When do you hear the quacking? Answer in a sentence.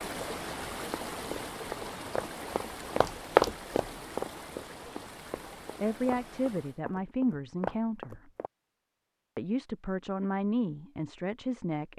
The quacking can't be heard in this clip.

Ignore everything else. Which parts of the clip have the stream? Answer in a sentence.
You can hear the stream from 0.0 to 6.8 s.